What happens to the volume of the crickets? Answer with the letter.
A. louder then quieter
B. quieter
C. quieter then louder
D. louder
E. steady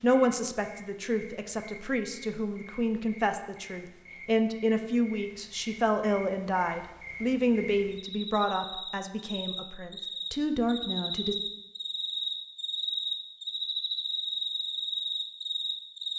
D.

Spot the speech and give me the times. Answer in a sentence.
The speech can be heard from 0.0 to 11.3 s.